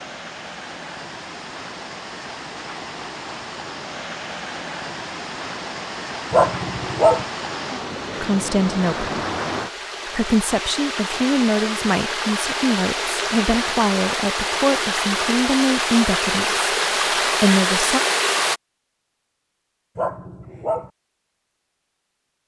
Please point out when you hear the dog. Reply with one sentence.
You can hear the dog from 6.3 to 7.2 s and from 19.9 to 20.9 s.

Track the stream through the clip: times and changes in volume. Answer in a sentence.
The stream can be heard from 0.0 to 18.6 s, getting louder.